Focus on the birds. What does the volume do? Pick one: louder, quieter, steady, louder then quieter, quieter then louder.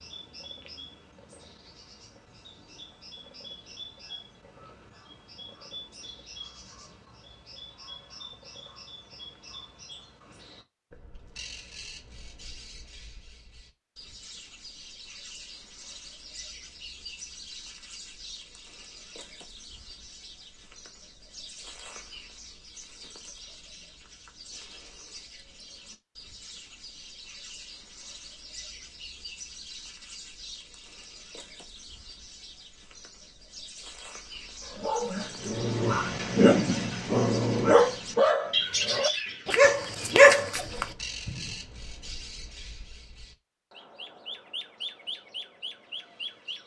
louder.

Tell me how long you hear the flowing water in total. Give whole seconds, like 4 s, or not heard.
not heard.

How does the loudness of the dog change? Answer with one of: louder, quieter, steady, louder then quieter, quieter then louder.
louder.